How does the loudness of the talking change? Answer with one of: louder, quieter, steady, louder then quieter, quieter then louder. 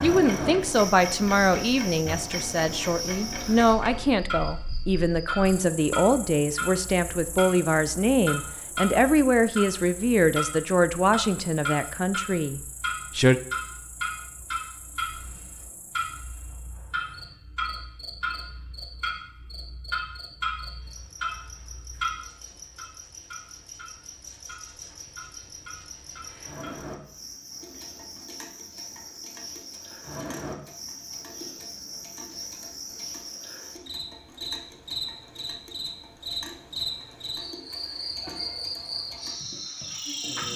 steady.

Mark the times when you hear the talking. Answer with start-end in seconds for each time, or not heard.
0.0-13.4.